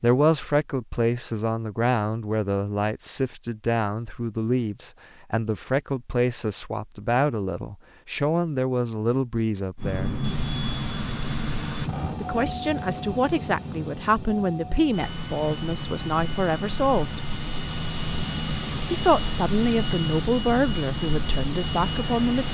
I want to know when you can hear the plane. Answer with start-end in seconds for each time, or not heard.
9.8-22.4.